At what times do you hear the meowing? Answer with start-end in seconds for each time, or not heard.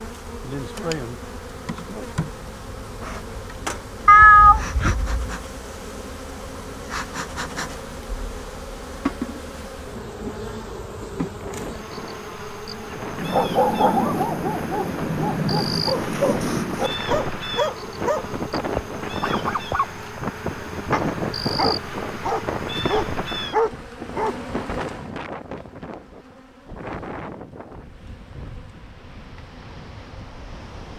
4.0-5.3.